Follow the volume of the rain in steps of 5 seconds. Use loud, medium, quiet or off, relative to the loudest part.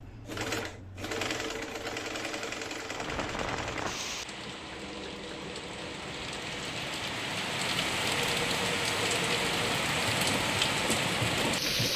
medium, loud, loud.